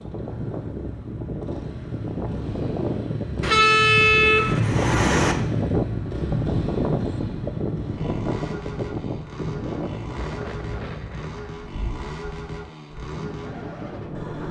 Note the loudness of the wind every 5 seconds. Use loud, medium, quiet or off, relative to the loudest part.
loud, loud, medium.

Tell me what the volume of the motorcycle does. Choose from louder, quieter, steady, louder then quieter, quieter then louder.
louder then quieter.